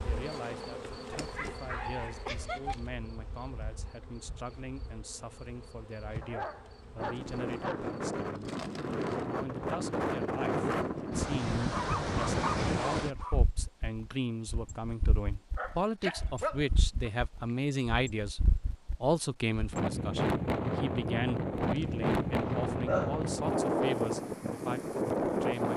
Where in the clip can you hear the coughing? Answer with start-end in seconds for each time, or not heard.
not heard.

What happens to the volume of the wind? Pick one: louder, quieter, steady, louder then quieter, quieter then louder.
quieter then louder.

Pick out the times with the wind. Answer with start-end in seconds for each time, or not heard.
7.0-25.7.